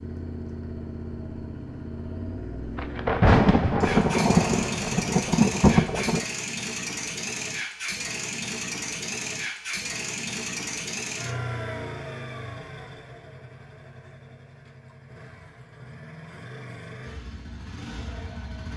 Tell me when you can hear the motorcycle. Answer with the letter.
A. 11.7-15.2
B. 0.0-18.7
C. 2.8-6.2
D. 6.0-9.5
B.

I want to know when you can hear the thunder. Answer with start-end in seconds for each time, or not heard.
2.8-6.2.